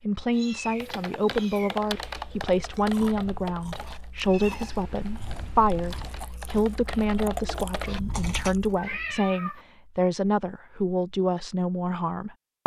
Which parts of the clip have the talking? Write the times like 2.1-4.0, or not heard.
0.0-12.6.